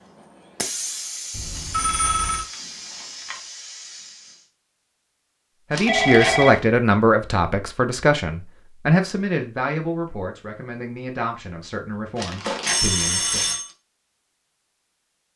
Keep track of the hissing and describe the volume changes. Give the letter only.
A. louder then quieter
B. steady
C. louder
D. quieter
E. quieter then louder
D.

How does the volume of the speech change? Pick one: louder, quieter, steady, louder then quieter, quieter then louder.
quieter.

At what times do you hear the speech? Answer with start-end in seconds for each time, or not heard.
5.7-13.4.